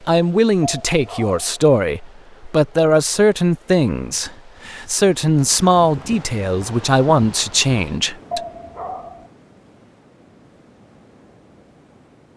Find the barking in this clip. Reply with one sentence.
The barking can be heard from 0.6 to 1.6 s and from 8.3 to 9.3 s.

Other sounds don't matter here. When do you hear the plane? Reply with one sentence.
You can't hear the plane here.